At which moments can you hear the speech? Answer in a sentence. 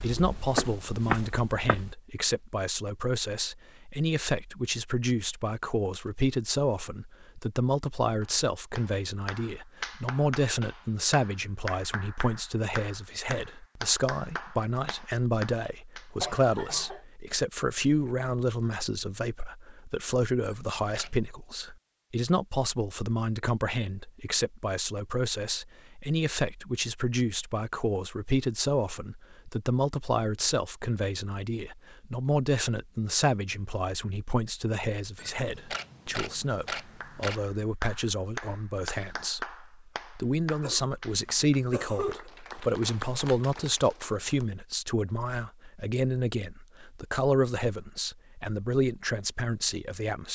You can hear the speech from 0.0 to 50.2 s.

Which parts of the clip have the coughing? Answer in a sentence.
The coughing can be heard from 16.2 to 17.0 s and from 40.6 to 42.3 s.